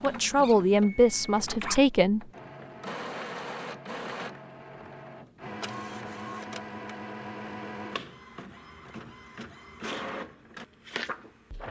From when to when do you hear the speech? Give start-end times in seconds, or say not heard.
0.0-2.2.